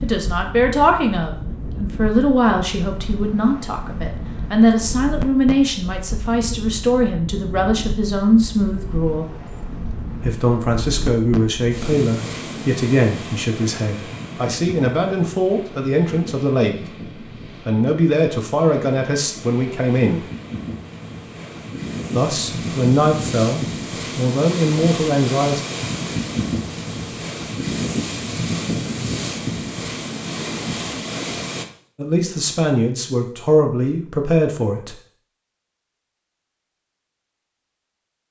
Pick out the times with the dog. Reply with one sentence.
The dog can't be heard in this clip.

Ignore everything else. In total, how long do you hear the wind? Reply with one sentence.
The wind can be heard for 32 seconds in total.